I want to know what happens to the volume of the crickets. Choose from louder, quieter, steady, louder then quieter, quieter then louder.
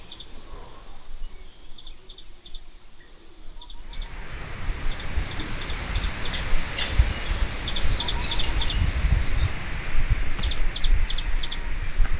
louder then quieter.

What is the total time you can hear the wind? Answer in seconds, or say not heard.
8 s.